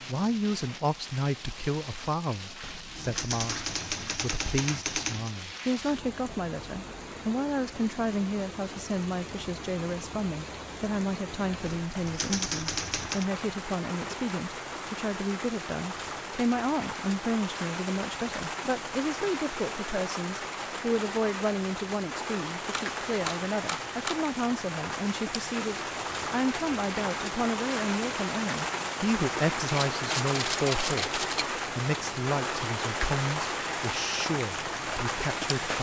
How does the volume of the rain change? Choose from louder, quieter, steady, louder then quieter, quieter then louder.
louder.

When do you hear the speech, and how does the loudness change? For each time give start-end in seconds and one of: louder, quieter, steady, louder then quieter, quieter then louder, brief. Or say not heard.
0.1-35.7 steady.